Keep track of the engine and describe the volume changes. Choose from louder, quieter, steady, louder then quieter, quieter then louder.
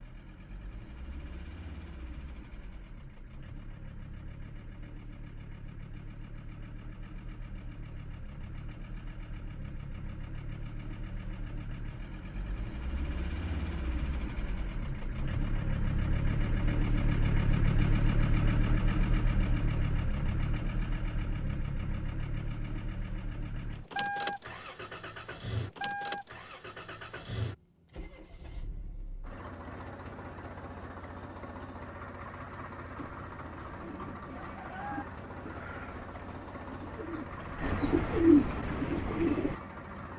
louder then quieter.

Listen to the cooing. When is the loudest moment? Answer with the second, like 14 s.
38 s.